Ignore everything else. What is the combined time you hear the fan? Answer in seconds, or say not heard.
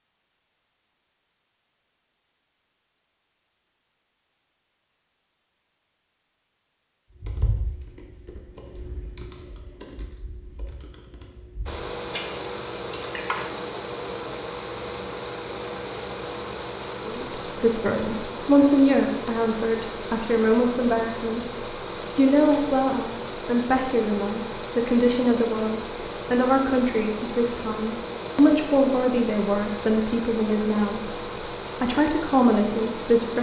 22 s.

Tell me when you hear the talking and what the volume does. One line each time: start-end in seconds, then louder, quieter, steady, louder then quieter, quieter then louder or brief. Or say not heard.
17.1-31.1 steady
31.8-33.3 brief.